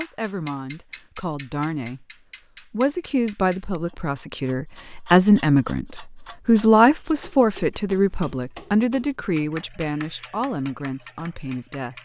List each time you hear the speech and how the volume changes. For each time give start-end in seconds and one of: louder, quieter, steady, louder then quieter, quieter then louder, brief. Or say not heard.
0.0-2.0 brief
2.7-11.9 louder then quieter.